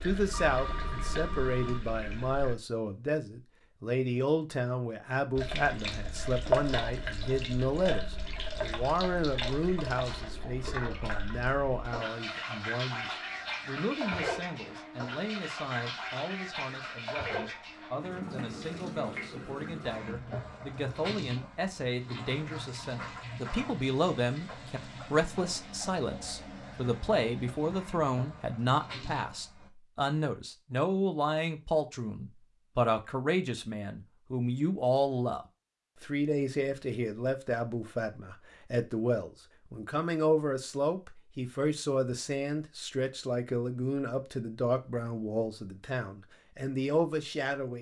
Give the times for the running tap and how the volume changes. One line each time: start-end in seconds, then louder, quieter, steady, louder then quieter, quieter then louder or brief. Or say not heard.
0.0-2.5 brief
5.3-29.7 quieter.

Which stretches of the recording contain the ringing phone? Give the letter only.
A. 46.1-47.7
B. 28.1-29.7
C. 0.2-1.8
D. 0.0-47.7
C.